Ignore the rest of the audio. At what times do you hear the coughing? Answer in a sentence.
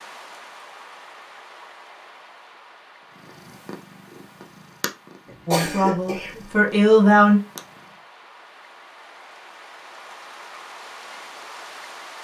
You can hear the coughing from 5.2 to 6.5 s.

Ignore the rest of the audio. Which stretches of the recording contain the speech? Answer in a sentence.
You can hear the speech from 5.5 to 7.4 s.